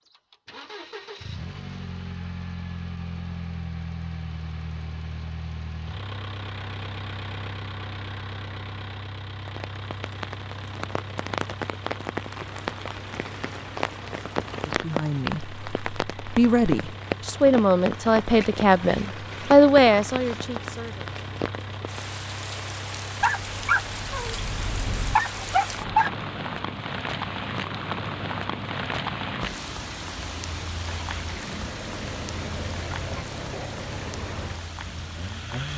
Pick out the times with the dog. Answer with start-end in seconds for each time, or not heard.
23.2-26.1.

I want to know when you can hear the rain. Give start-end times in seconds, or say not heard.
9.4-35.7.